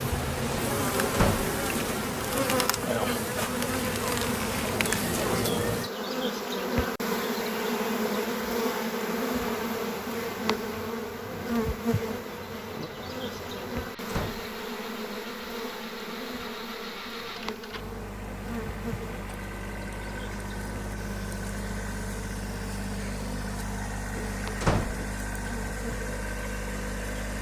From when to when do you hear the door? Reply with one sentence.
You can hear the door from 1.1 to 1.6 s, from 14.1 to 14.6 s and from 24.6 to 25.1 s.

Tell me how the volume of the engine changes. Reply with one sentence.
The volume of the engine goes up.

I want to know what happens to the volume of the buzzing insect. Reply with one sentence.
The loudness of the buzzing insect goes down.